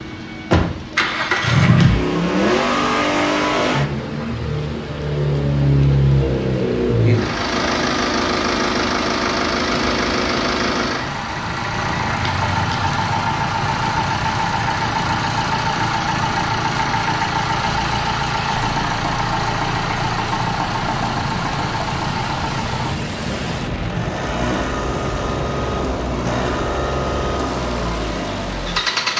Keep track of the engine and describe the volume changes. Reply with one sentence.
The loudness of the engine goes down.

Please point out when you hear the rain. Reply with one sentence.
You can hear the rain from 0.0 to 29.1 s.